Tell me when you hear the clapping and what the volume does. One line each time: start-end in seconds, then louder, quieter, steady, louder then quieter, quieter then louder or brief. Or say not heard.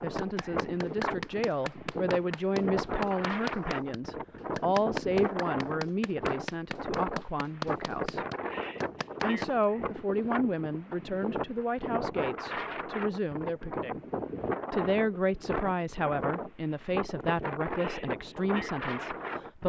0.1-9.7 steady.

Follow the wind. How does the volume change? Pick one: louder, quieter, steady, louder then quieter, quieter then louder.
steady.